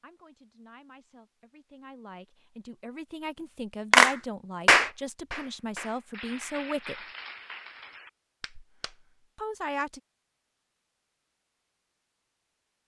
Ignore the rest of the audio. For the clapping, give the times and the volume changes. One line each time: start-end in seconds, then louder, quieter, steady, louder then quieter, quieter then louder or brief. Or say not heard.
3.9-9.2 quieter.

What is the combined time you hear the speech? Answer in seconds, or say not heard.
8 s.